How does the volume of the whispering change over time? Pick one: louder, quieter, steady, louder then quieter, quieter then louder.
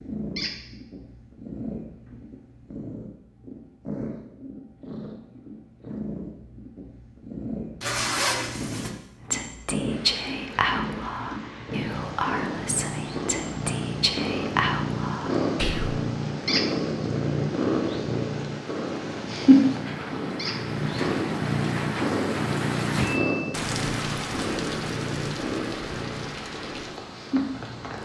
quieter then louder.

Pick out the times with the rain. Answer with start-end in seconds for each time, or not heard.
9.8-28.0.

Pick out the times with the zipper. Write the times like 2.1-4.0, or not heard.
7.8-8.9.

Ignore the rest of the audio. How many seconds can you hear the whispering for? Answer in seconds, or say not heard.
7 s.